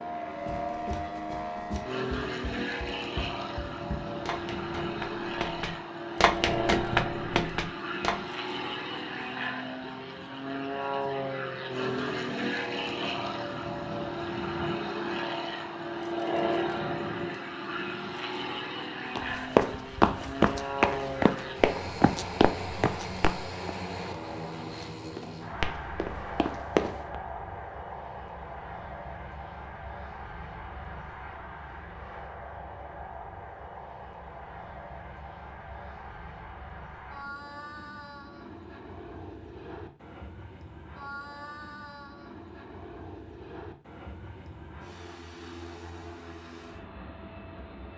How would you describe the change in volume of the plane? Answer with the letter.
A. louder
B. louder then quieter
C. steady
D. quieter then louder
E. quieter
E.